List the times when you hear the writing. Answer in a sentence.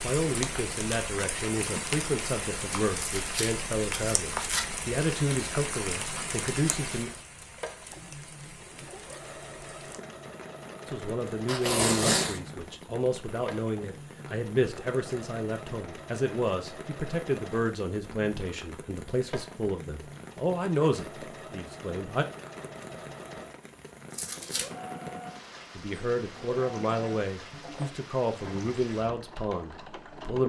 The writing can't be heard in this clip.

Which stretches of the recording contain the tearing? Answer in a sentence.
The tearing can be heard from 3.0 to 4.7 s, from 11.4 to 12.4 s and from 24.1 to 24.7 s.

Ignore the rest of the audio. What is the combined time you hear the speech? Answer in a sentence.
The speech can be heard for 23 seconds in total.